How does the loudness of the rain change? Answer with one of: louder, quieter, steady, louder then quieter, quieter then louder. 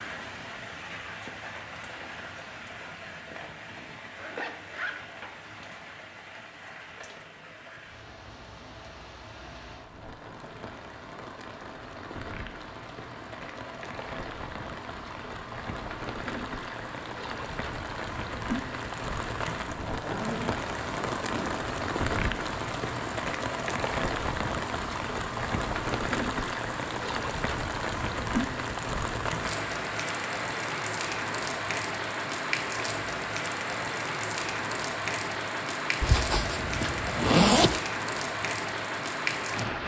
louder.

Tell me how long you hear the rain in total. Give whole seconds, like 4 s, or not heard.
40 s.